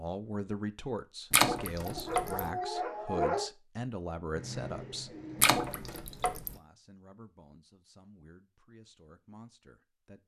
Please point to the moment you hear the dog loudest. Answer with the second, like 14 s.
3 s.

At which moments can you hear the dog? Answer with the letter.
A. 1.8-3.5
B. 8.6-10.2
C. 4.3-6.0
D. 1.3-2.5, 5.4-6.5
A.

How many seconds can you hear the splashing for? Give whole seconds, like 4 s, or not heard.
2 s.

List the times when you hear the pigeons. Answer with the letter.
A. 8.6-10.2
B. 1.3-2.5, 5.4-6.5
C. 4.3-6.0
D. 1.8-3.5
C.